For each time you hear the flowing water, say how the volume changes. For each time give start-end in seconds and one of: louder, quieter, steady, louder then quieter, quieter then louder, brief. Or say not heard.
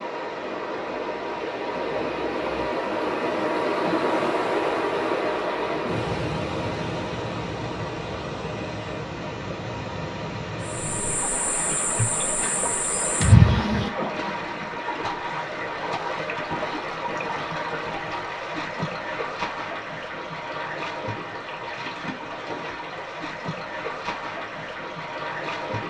0.0-25.8 quieter.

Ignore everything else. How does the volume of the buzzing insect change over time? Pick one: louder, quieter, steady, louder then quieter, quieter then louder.
louder then quieter.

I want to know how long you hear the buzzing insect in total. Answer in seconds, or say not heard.
4 s.